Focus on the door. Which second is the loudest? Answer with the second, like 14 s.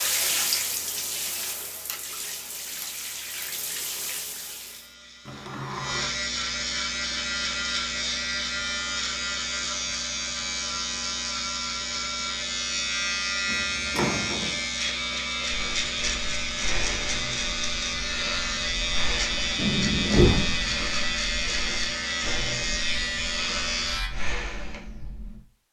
20 s.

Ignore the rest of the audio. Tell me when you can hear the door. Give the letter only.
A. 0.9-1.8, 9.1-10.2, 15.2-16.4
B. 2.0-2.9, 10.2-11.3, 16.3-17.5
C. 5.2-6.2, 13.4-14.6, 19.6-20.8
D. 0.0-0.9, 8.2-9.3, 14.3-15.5
C.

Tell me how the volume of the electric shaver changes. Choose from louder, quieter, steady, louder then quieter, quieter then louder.
louder.